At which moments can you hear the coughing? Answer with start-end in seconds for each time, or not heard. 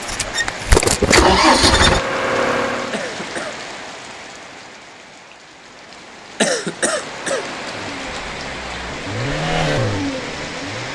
2.9-3.5, 6.4-7.5.